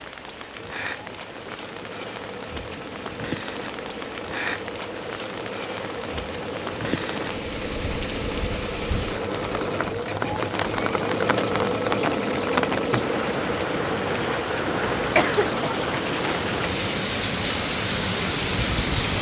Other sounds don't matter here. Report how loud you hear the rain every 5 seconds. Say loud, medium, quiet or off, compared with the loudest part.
medium, medium, loud, loud.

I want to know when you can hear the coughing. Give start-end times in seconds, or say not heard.
14.9-15.8.